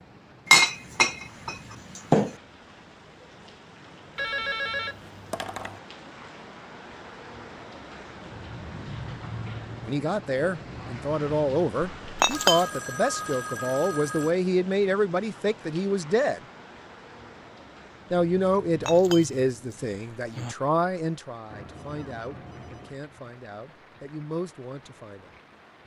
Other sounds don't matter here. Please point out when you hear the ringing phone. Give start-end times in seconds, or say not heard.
4.2-5.8, 12.1-14.3, 21.5-23.0.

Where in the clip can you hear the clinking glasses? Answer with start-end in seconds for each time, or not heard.
0.5-2.4, 12.2-12.7, 18.9-19.3, 19.9-20.6.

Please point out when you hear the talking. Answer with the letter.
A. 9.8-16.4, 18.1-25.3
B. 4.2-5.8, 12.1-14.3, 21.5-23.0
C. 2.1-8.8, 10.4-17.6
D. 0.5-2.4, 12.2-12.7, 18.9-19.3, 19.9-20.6
A.